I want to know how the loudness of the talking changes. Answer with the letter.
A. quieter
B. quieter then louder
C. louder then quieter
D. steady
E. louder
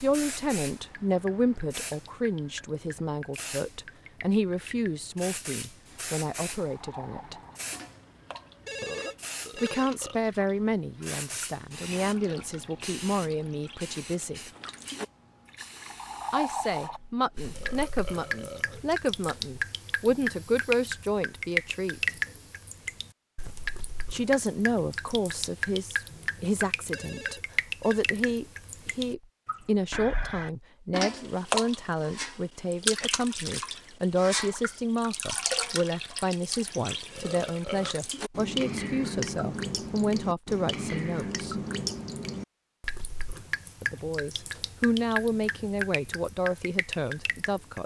D.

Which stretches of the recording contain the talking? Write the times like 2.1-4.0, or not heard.
0.0-7.3, 9.6-14.4, 16.3-22.0, 24.1-41.5, 43.8-47.8.